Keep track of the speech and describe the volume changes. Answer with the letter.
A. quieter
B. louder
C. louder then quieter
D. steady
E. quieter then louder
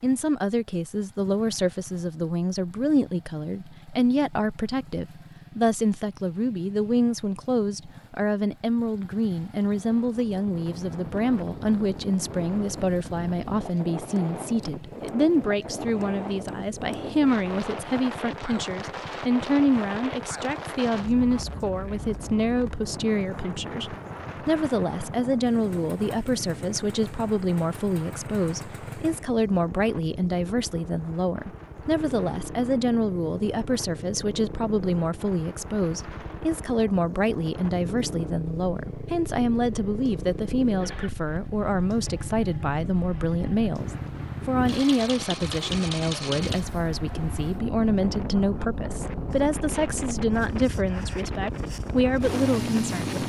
D.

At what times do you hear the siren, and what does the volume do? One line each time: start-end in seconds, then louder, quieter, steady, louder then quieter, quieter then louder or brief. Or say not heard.
not heard.